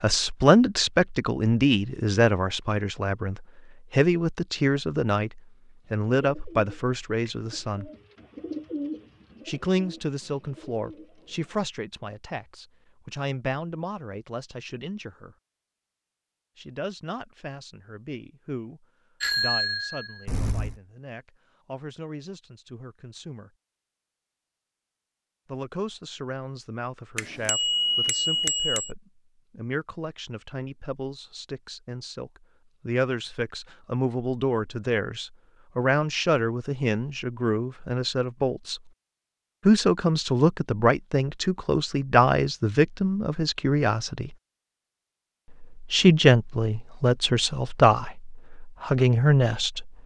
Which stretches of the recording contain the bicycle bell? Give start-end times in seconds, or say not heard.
19.2-20.8, 27.1-28.9.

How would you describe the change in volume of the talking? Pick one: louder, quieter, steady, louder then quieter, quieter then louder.
quieter then louder.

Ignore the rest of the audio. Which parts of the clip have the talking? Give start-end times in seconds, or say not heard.
0.0-7.9, 9.4-15.3, 16.6-23.5, 25.4-38.8, 39.6-44.3, 45.6-49.9.